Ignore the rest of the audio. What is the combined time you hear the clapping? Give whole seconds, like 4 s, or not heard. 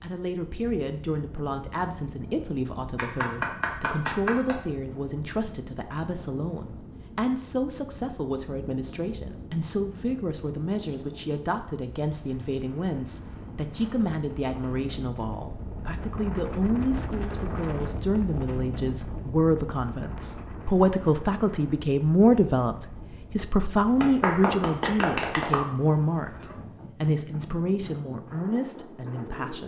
3 s.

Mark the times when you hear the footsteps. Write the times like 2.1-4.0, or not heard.
not heard.